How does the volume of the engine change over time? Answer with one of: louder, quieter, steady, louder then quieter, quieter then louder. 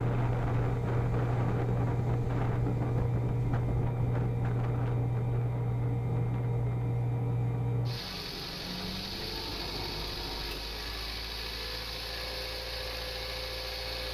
quieter.